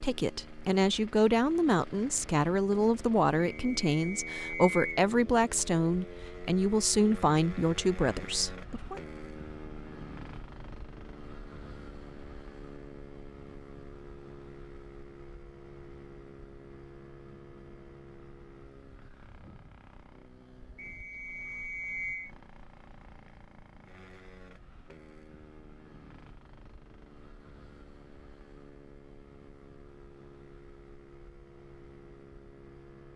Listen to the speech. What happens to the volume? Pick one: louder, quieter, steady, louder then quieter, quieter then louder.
steady.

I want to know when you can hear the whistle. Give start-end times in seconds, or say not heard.
3.4-5.0, 20.8-22.3.